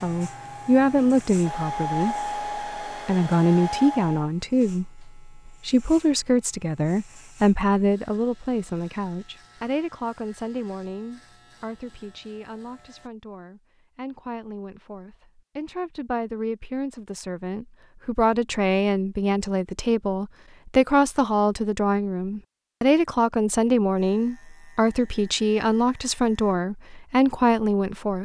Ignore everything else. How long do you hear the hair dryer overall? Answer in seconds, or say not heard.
4 s.